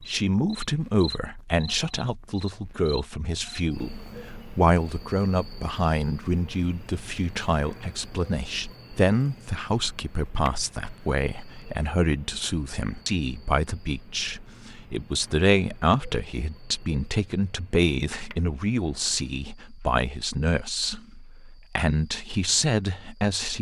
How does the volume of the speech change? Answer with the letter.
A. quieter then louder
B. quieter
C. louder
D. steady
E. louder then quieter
D.